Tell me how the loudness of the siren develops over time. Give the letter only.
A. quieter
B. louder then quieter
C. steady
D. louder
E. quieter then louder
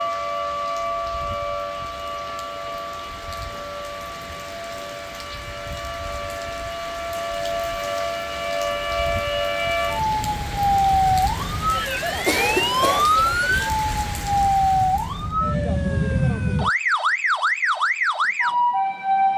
D.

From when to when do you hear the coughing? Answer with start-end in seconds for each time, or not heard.
12.2-13.1.